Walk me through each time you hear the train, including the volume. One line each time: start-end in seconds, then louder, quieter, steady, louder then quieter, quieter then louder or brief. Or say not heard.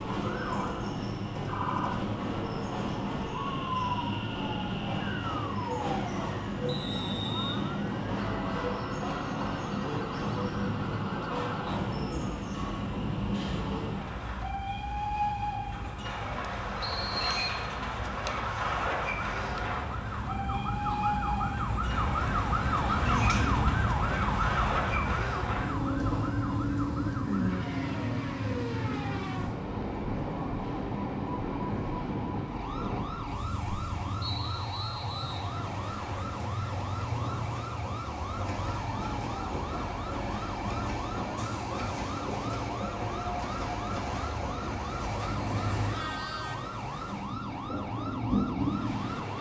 0.0-49.3 steady.